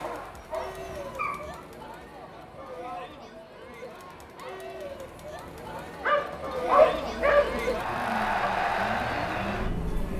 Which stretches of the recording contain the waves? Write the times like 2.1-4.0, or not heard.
not heard.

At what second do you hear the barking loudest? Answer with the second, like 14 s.
7 s.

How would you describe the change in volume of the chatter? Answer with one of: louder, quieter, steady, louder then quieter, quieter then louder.
louder.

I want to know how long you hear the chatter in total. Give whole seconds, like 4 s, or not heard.
10 s.